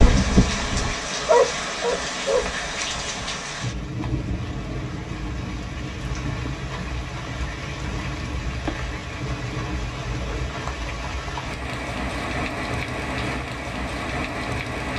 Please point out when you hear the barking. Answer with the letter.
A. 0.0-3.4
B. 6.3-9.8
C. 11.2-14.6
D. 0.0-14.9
A.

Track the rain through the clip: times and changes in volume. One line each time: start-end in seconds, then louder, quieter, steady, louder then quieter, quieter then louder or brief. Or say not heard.
0.0-14.9 steady.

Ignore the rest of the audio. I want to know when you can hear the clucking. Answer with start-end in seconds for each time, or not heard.
not heard.